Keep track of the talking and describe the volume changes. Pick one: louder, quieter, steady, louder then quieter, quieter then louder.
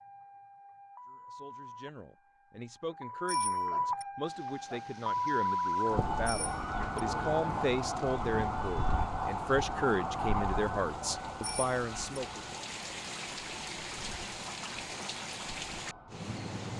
louder.